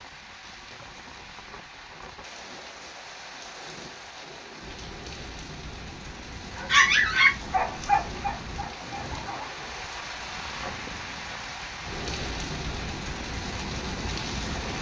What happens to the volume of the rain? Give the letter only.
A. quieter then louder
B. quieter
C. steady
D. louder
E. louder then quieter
D.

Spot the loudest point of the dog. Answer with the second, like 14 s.
7 s.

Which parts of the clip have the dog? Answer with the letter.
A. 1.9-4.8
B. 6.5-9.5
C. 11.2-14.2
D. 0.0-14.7
B.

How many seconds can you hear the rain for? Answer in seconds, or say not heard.
15 s.